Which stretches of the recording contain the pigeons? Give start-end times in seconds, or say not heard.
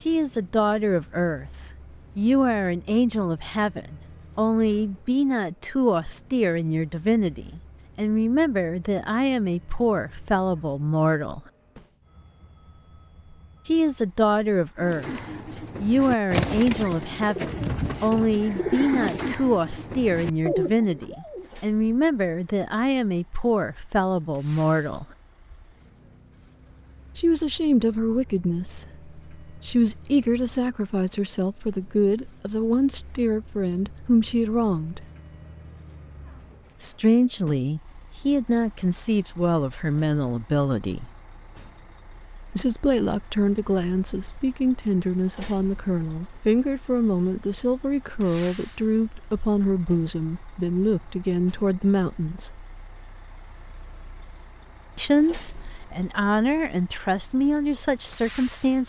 14.8-21.5.